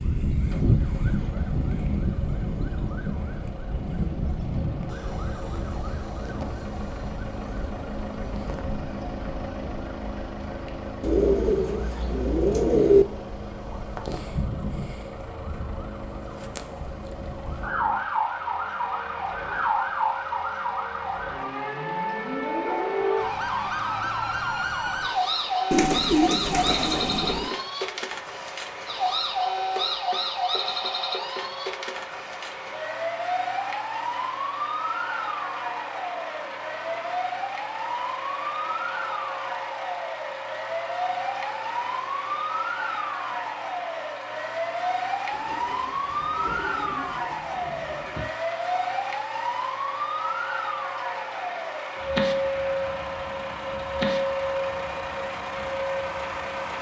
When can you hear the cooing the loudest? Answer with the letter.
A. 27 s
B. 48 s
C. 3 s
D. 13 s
D.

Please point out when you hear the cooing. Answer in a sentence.
You can hear the cooing from 11.0 to 13.1 s, from 25.7 to 27.6 s and from 45.3 to 48.3 s.